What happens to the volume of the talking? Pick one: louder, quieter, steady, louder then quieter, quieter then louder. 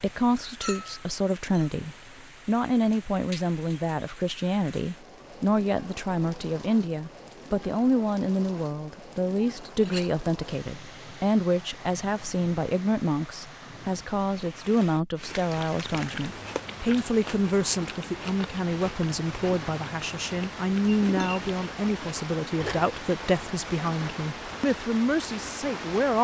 steady.